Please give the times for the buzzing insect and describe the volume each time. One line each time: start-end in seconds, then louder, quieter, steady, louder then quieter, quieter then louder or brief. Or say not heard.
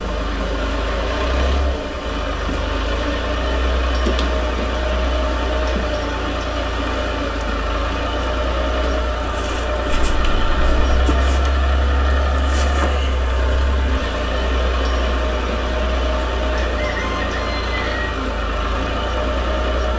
0.0-19.9 steady.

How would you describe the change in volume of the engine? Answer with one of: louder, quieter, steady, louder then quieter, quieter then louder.
steady.